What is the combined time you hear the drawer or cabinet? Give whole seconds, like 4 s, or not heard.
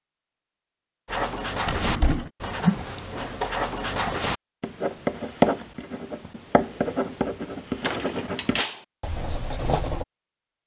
2 s.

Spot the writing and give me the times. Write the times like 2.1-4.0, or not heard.
1.1-10.1.